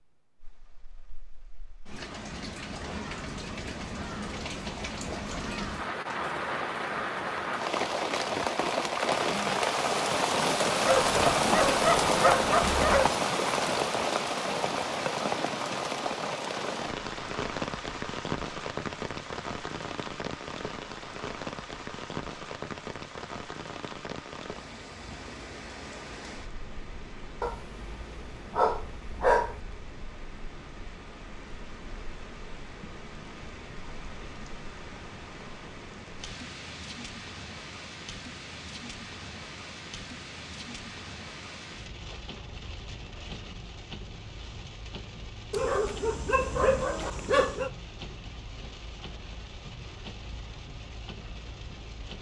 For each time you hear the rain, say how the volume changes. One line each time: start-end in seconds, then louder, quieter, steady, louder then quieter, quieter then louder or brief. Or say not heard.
0.2-52.1 quieter.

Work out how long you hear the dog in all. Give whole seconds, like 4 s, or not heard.
7 s.